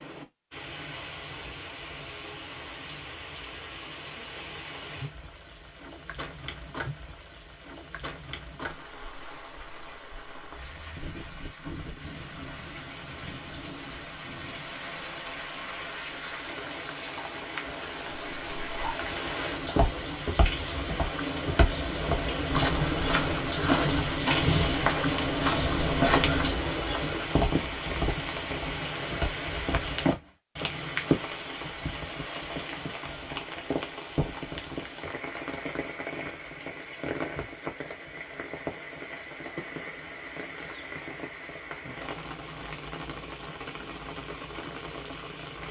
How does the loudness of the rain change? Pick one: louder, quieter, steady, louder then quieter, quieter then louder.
louder then quieter.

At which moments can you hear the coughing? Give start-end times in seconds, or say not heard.
not heard.